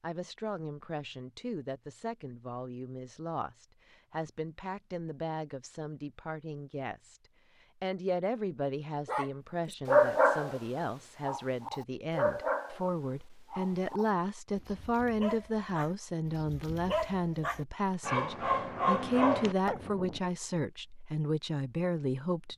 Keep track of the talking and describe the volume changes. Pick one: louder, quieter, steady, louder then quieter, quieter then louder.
louder.